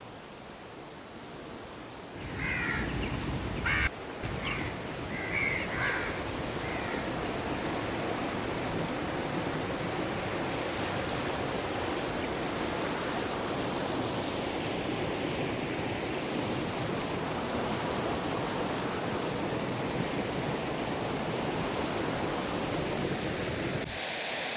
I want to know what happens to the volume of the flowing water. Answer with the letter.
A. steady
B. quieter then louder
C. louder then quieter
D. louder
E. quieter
D.